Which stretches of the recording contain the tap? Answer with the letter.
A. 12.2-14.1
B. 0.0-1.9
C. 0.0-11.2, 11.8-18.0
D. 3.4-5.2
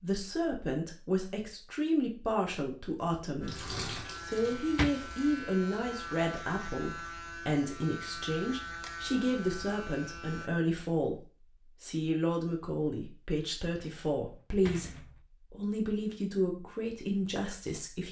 D.